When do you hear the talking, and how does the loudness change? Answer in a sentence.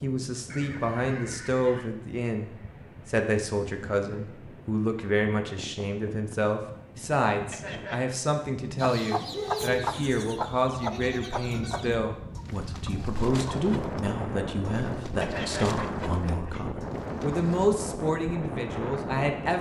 The talking can be heard from 0.0 to 19.5 s, at a steady volume.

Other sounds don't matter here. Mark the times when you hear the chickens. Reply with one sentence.
You can hear the chickens from 8.8 to 17.6 s.